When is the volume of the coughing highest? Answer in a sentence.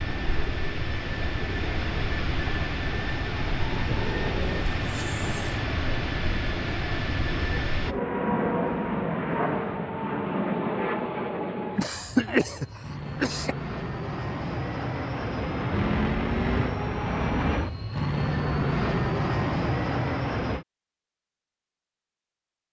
The volume of the coughing peaks at 12 seconds.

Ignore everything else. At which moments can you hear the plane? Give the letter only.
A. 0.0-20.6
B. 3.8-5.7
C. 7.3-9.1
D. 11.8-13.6
A.